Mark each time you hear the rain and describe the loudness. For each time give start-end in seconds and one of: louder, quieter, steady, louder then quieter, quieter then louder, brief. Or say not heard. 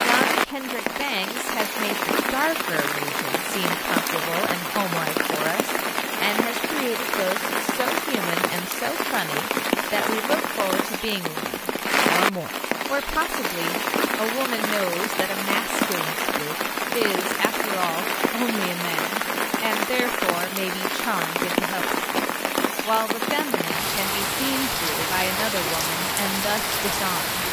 0.0-27.4 steady.